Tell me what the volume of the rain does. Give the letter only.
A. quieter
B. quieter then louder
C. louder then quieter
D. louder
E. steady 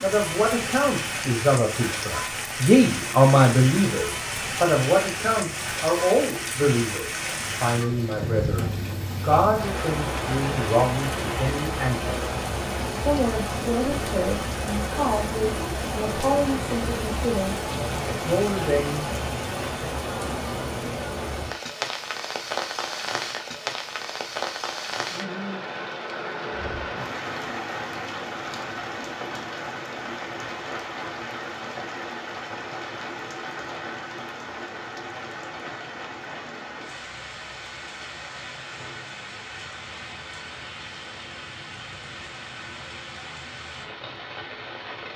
A.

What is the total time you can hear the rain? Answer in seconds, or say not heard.
45 s.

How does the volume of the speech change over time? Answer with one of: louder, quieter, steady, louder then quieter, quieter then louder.
quieter.